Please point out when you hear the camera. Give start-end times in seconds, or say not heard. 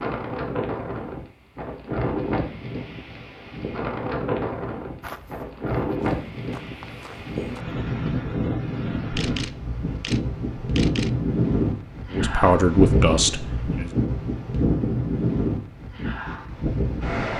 9.1-11.1.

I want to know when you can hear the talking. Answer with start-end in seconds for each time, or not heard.
12.1-13.9.